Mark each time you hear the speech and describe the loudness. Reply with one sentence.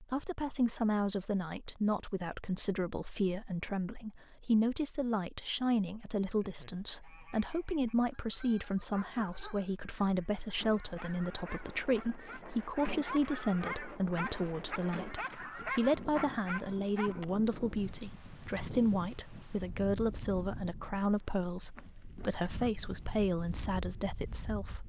You can hear the speech from 0.0 to 24.8 s, at a steady volume.